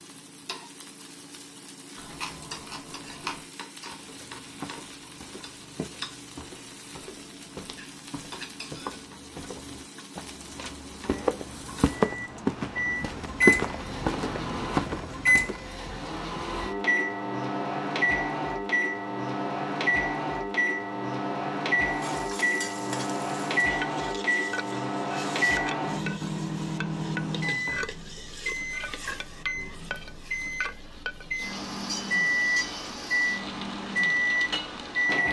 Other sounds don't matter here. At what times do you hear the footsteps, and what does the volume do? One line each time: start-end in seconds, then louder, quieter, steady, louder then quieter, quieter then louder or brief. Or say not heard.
3.9-15.7 louder.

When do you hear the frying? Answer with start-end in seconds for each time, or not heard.
0.0-12.4, 21.9-35.2.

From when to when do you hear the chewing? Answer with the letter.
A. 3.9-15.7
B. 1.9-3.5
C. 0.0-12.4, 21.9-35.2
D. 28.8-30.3
B.